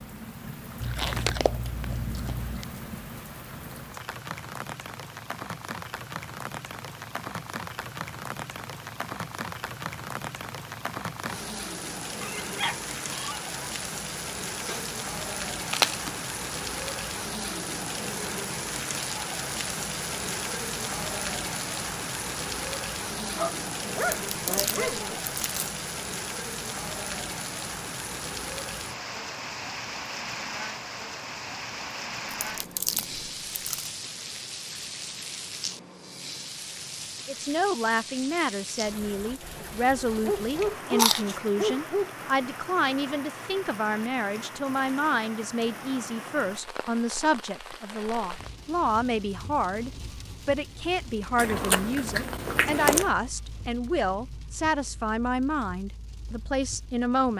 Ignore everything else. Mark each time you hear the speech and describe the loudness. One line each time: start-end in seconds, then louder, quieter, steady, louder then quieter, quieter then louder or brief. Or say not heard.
37.2-57.3 steady.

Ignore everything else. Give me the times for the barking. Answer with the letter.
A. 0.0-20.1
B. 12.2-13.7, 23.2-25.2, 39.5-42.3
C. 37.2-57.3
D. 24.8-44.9
B.